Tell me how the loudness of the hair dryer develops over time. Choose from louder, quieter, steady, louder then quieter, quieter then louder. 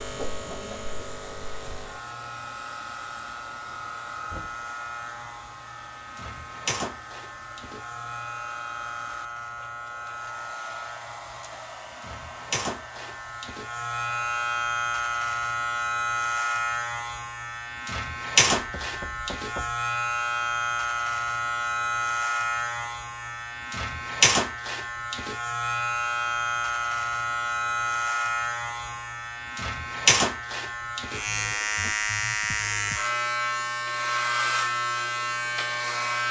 steady.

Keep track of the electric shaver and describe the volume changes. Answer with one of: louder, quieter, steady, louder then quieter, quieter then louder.
louder.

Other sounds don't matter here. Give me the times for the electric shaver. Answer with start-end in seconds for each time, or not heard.
0.0-36.2.